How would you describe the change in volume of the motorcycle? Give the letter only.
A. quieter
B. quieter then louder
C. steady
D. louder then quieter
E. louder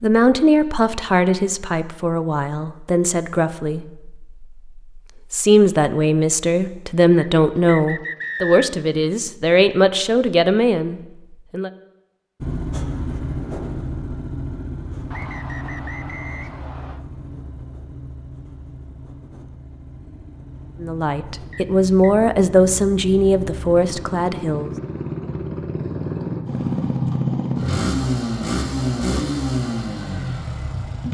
B.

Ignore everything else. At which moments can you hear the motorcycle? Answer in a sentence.
The motorcycle can be heard from 12.4 to 31.0 s.